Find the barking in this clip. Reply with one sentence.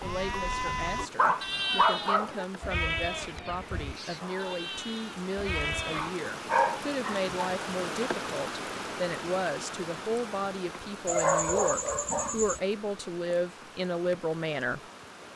You can hear the barking from 0.5 to 2.5 s, from 5.9 to 7.5 s and from 11.1 to 12.6 s.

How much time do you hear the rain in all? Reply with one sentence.
You can hear the rain for 15 seconds altogether.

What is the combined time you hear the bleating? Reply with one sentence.
You can hear the bleating for 6 seconds altogether.